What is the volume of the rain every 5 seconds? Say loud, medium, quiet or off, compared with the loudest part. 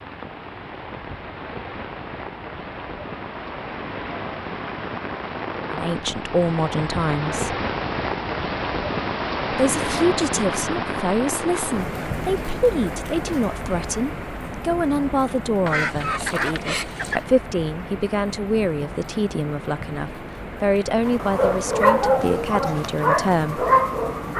medium, loud, loud, medium, medium.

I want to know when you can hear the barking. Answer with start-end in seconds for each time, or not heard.
21.1-24.3.